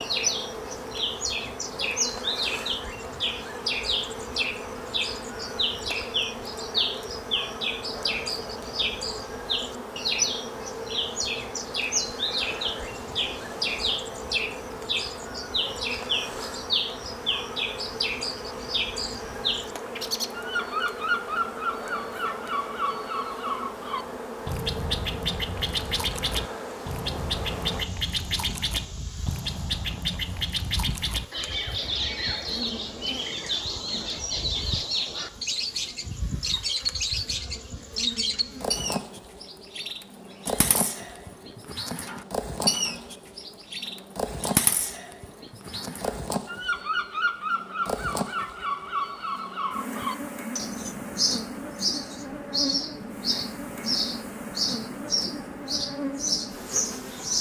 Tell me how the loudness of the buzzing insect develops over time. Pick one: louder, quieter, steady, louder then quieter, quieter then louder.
steady.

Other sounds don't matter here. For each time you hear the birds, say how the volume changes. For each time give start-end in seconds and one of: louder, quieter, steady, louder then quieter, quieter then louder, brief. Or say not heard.
0.0-57.3 steady.